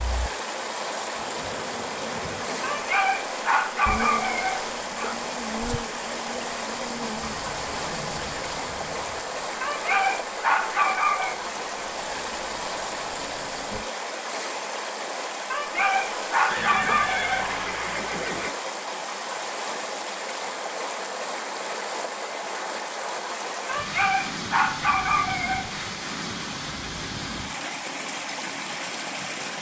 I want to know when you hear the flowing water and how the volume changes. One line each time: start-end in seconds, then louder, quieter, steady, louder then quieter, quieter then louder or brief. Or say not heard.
0.0-29.5 steady.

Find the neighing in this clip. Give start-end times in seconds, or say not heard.
7.2-9.2, 16.5-18.5.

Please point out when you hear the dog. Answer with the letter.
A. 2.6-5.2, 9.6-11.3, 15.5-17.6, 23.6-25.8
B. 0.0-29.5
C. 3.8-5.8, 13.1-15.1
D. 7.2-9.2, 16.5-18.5
A.